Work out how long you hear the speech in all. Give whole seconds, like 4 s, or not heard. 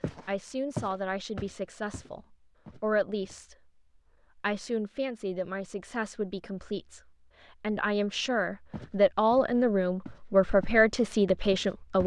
11 s.